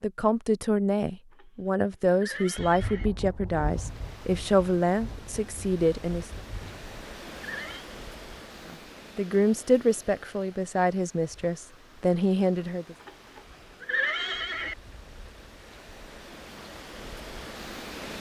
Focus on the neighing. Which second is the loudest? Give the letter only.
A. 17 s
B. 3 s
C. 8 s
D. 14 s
D.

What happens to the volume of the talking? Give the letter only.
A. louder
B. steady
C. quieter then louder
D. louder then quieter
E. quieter
B.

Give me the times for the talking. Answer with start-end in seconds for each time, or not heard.
0.0-6.2, 8.7-12.9.